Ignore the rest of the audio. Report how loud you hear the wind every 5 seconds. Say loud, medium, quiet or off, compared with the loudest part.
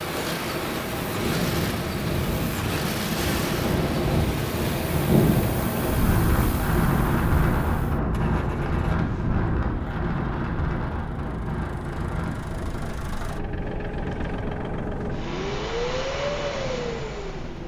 loud, loud, medium, quiet.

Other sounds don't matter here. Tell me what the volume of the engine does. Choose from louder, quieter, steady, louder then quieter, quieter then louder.
quieter then louder.